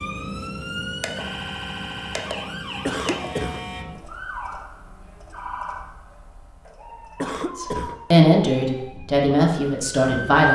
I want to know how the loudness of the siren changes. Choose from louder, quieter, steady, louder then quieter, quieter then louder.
quieter.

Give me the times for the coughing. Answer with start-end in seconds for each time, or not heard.
2.9-3.6, 7.2-8.0.